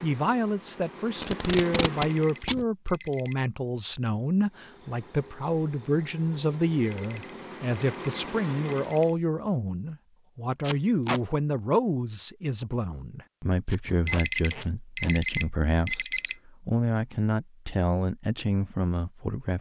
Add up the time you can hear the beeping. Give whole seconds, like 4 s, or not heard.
6 s.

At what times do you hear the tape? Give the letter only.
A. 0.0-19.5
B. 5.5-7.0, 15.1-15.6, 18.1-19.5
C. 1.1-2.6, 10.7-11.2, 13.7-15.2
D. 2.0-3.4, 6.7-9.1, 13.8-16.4
C.